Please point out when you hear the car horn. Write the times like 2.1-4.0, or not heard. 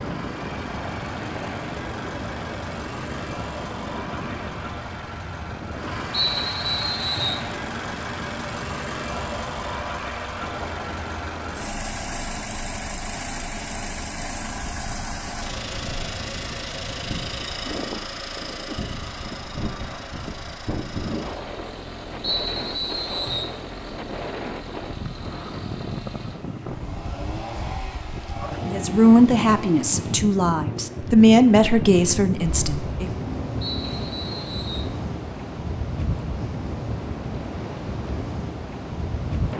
not heard.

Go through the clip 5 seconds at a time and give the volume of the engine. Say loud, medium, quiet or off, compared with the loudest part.
loud, loud, loud, loud, medium, medium, medium, off.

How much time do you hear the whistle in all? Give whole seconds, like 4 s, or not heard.
4 s.